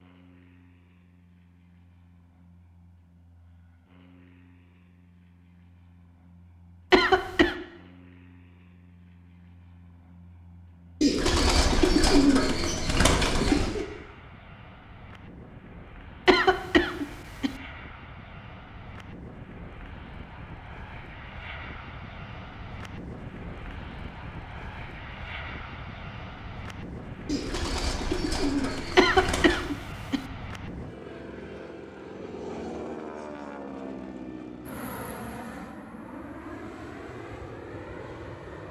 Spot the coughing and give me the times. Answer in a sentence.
The coughing can be heard from 6.9 to 7.5 s, from 16.2 to 17.6 s and from 28.9 to 30.2 s.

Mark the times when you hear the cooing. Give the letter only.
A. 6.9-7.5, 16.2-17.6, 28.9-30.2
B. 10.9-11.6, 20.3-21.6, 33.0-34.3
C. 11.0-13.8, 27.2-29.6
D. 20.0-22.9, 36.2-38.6
C.